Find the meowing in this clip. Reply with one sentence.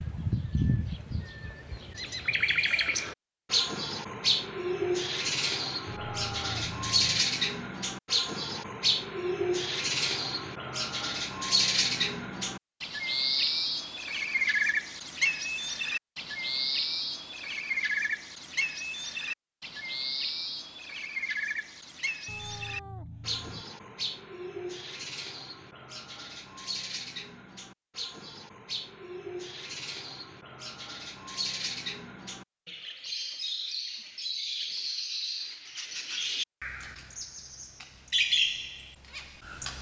The meowing can be heard from 5.8 to 7.2 s and from 22.2 to 23.6 s.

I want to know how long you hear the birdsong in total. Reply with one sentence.
The birdsong can be heard for 40 seconds in total.